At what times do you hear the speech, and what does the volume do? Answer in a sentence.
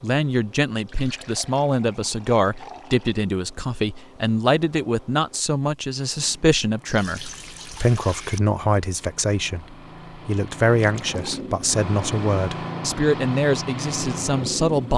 You can hear the speech from 0.0 to 14.9 s, at a steady volume.